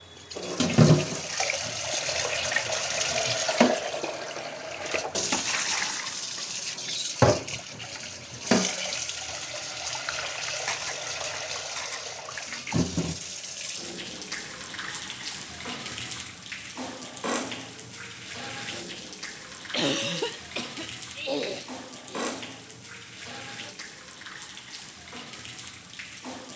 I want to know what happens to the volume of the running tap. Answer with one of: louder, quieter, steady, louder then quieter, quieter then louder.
quieter.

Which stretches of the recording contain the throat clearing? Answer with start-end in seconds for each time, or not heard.
19.7-22.4.